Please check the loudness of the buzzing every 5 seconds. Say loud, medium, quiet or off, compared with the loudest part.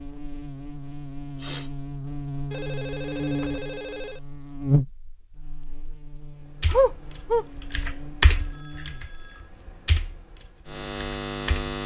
loud, quiet, loud.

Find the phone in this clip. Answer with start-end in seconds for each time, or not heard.
2.5-4.2, 8.3-9.5.